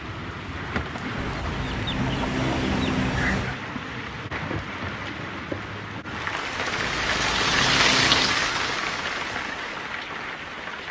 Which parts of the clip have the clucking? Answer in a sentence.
You can hear the clucking from 1.1 to 3.6 s and from 6.8 to 8.4 s.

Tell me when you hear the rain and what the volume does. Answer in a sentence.
The rain can be heard from 0.0 to 10.8 s, getting louder then quieter.